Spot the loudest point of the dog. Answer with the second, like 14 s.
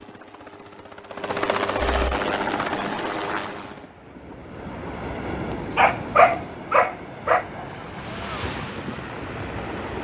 6 s.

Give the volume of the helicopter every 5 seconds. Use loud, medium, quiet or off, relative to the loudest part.
loud, off.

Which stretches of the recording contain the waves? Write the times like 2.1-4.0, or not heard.
2.2-9.9.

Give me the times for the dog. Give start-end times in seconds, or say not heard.
5.5-7.5.